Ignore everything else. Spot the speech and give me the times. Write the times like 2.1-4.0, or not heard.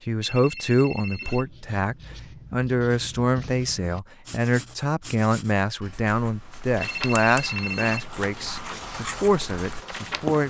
0.1-10.4.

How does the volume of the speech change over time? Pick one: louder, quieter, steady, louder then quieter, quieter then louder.
steady.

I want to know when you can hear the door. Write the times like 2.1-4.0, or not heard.
not heard.